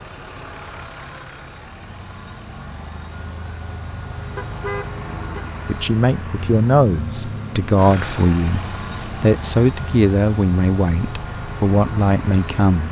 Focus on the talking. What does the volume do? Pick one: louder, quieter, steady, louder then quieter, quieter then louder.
steady.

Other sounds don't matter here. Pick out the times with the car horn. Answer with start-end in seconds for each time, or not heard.
4.3-5.5.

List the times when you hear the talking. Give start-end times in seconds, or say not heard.
5.7-12.8.